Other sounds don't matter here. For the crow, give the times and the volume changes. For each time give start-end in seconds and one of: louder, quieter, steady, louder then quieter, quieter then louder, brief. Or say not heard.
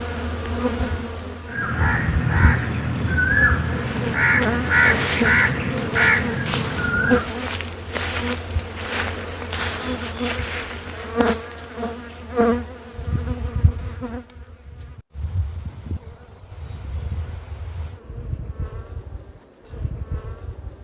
1.5-7.3 steady.